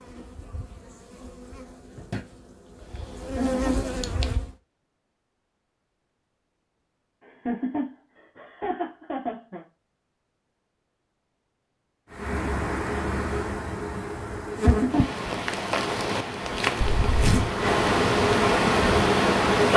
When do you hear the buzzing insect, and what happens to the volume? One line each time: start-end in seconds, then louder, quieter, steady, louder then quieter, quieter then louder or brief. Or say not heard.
0.0-4.5 louder
12.1-19.7 louder.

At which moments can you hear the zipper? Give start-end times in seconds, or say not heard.
16.8-17.5.